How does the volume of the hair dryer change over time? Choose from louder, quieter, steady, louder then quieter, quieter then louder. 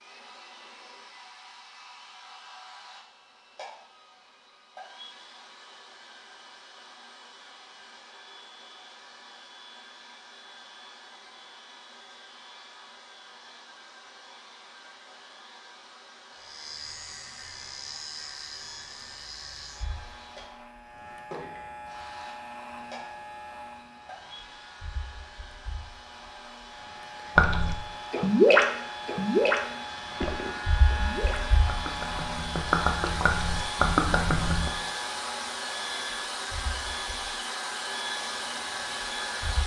louder.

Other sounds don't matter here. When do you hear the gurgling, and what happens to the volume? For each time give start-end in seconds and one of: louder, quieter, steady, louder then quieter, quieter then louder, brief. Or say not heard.
27.4-34.7 quieter then louder.